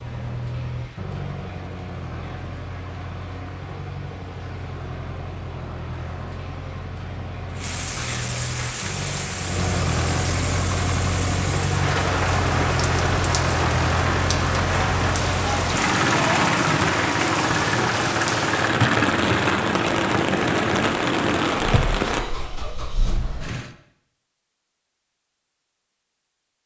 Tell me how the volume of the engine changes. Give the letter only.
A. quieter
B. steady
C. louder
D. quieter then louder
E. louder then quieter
C.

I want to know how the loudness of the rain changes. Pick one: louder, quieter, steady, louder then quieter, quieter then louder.
louder.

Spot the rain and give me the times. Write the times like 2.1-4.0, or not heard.
0.0-22.2.